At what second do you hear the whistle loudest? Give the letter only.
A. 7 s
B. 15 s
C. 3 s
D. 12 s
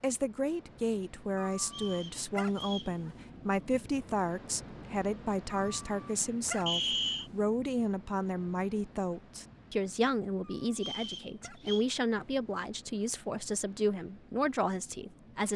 A.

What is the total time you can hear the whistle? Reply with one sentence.
You can hear the whistle for 3 seconds altogether.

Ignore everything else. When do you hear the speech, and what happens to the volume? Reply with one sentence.
You can hear the speech from 0.0 to 15.5 s, at a steady volume.